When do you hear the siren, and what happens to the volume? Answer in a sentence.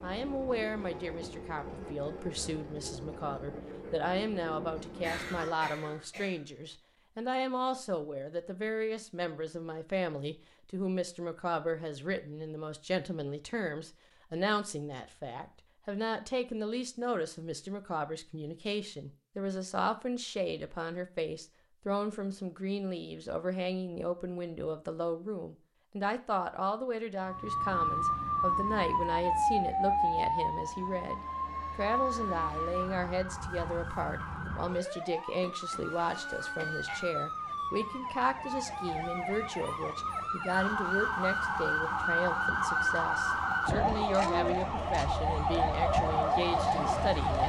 The siren can be heard from 27.2 to 47.4 s, getting quieter then louder.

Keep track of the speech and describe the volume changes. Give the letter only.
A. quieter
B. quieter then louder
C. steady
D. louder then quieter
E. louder
C.